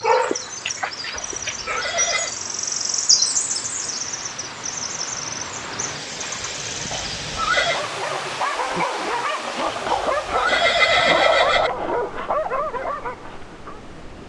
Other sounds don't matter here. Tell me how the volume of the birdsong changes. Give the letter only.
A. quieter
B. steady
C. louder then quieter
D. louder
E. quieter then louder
C.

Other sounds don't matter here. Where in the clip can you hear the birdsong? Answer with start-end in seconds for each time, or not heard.
0.0-7.0.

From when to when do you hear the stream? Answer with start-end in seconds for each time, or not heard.
0.0-14.2.